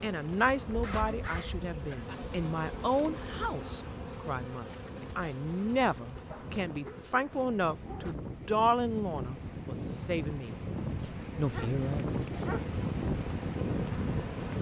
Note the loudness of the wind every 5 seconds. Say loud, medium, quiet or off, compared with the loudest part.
quiet, medium, loud.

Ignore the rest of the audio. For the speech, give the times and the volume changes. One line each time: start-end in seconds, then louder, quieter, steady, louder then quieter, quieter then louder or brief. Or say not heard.
0.0-10.6 steady
11.3-12.1 brief.